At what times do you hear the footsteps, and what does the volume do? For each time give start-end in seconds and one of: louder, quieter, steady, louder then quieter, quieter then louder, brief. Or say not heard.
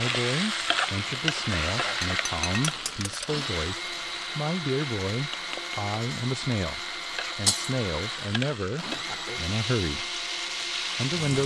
not heard.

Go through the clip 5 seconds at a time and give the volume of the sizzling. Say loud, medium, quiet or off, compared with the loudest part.
loud, medium, loud.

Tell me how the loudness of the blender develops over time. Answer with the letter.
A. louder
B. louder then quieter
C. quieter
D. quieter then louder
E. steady
E.